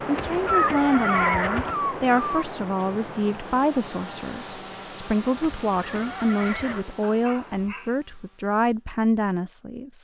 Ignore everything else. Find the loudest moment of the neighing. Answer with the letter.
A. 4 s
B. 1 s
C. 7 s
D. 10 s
B.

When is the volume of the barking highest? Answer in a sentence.
The volume of the barking peaks at 1 second.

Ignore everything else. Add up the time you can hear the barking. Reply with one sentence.
The barking can be heard for 3 seconds in total.